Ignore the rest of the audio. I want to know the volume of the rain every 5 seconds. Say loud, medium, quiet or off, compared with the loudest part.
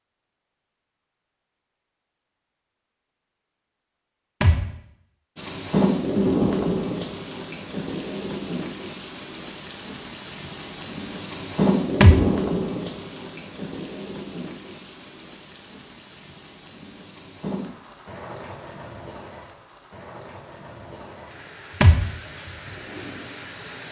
off, loud, loud, quiet, quiet.